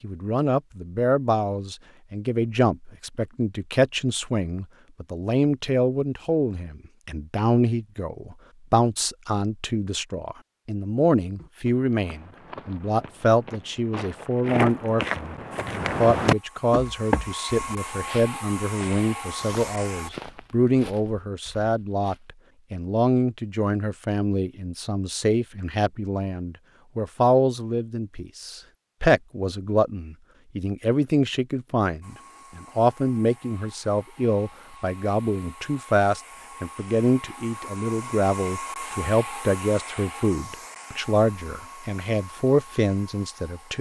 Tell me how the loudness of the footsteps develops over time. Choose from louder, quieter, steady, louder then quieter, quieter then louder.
louder then quieter.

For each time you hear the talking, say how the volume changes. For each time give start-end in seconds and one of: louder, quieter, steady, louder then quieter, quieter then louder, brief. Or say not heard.
0.0-43.7 steady.